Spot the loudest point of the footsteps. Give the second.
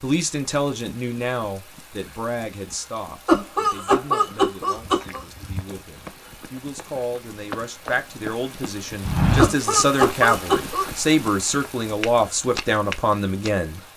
9 s.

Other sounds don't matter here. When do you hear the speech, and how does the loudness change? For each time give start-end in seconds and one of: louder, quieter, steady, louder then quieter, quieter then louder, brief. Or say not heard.
0.0-13.8 quieter then louder.